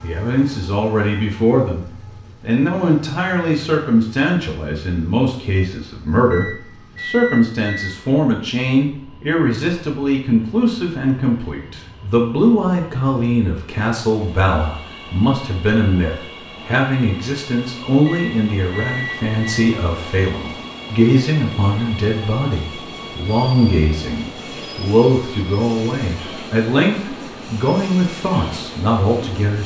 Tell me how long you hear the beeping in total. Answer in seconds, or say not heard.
3 s.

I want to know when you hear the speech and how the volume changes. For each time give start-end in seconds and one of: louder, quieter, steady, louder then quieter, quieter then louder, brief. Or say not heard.
0.0-29.6 steady.